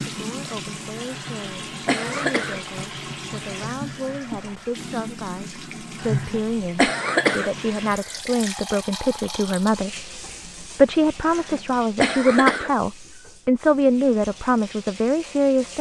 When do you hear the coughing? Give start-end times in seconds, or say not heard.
1.1-2.8, 6.0-8.1, 11.2-12.7.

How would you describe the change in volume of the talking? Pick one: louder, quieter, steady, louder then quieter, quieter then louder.
louder.